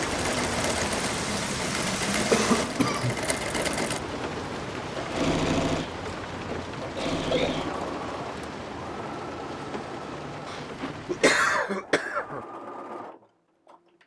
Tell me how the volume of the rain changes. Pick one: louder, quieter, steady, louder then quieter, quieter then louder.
quieter.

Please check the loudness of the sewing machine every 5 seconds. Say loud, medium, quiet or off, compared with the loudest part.
loud, loud, medium.